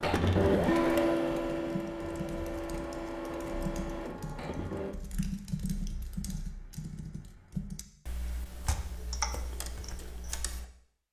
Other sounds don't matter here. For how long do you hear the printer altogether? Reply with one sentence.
You can hear the printer for 5 seconds altogether.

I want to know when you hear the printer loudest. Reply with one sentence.
The loudest moment of the printer is at 1 second.